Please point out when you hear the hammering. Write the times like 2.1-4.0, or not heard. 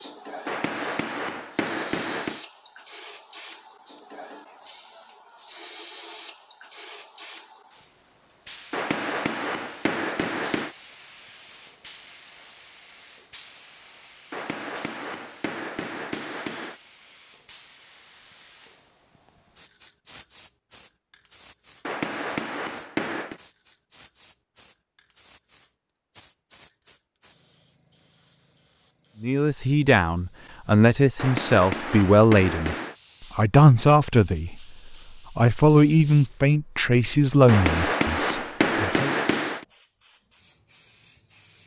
0.5-2.5, 8.7-10.8, 14.3-16.8, 21.9-23.4, 31.1-33.0, 37.5-39.6.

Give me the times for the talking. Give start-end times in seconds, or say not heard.
29.2-32.8, 33.4-39.1.